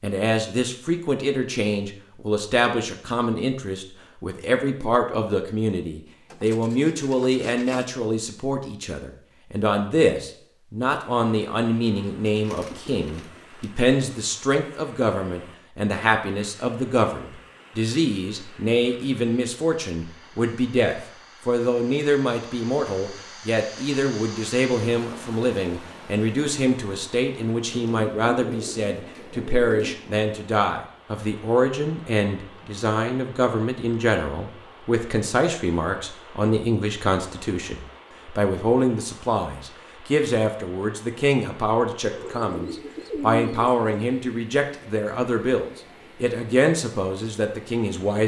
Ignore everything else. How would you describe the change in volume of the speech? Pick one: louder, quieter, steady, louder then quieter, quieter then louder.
steady.